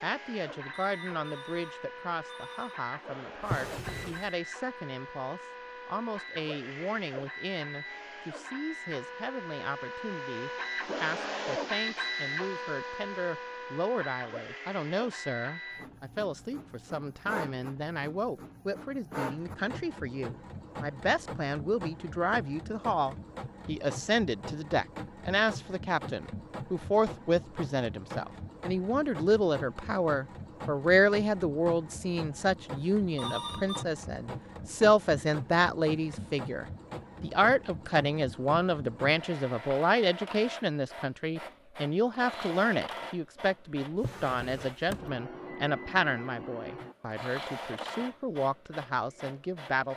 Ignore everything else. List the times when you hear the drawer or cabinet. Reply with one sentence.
You can hear the drawer or cabinet from 3.4 to 4.3 s and from 44.0 to 45.1 s.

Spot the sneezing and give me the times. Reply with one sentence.
The sneezing can't be heard in this clip.